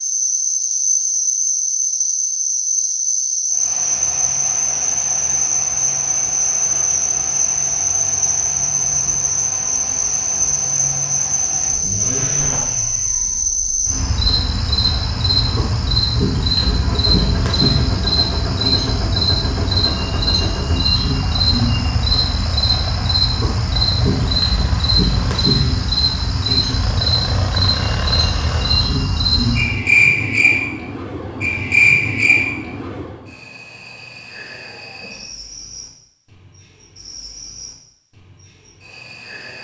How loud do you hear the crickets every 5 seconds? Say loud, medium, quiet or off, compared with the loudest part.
loud, loud, loud, loud, loud, loud, loud, quiet.